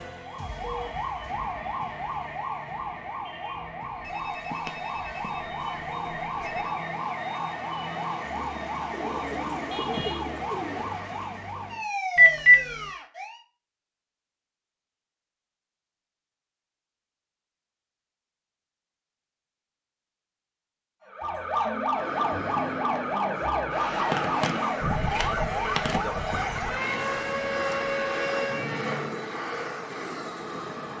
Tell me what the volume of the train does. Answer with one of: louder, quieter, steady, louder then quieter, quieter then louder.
steady.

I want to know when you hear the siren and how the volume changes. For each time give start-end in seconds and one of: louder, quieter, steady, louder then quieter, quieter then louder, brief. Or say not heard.
0.0-13.4 steady
21.1-29.3 steady.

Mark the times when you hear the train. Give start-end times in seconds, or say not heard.
21.9-30.9.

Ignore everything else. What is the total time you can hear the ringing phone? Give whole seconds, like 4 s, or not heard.
5 s.